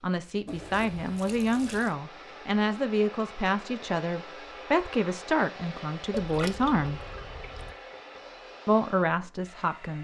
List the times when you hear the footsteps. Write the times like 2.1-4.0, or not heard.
not heard.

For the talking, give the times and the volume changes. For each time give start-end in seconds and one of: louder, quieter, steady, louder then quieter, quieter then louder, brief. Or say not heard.
0.0-7.0 steady
8.7-10.0 brief.